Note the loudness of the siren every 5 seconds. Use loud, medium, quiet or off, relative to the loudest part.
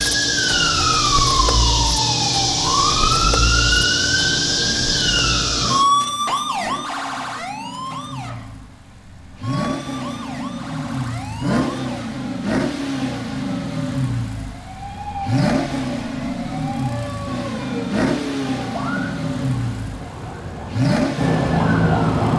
loud, medium, quiet, quiet, loud.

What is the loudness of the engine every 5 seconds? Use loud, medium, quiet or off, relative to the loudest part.
medium, medium, loud, loud, loud.